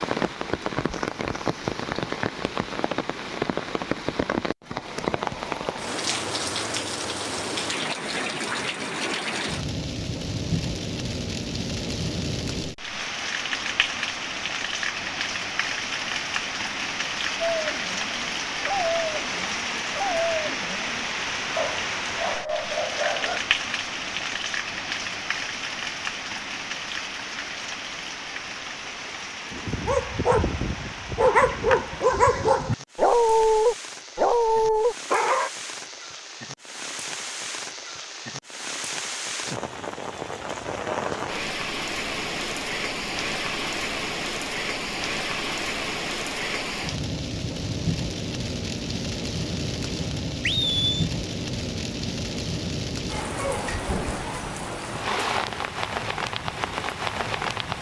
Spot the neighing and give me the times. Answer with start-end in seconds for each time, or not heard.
50.4-51.1.